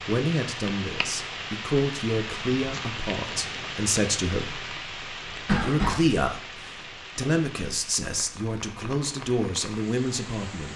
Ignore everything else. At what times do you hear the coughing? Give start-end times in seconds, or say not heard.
5.5-6.0.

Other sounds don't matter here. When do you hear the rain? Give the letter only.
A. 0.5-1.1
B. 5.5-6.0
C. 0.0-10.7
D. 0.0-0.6
C.